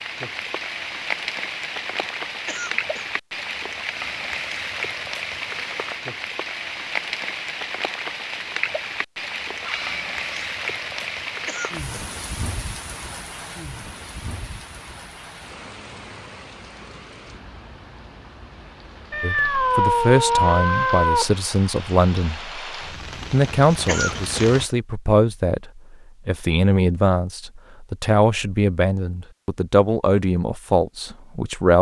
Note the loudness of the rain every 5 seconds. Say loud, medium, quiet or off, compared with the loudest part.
loud, loud, loud, quiet, medium, off, off.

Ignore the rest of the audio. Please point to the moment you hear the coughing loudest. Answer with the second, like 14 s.
24 s.